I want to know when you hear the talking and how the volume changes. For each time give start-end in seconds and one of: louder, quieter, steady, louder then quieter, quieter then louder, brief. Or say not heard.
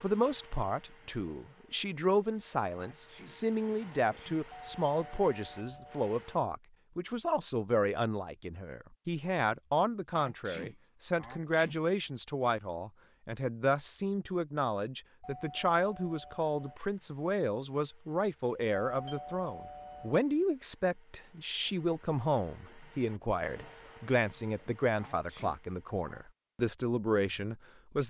0.0-28.0 steady.